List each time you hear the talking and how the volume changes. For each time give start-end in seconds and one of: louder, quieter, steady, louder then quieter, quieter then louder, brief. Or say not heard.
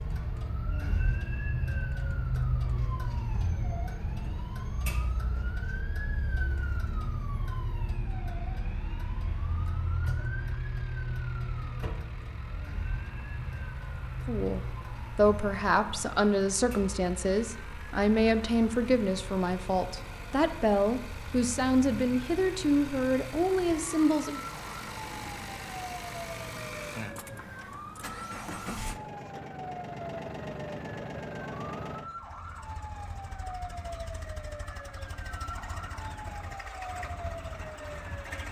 14.2-24.4 steady.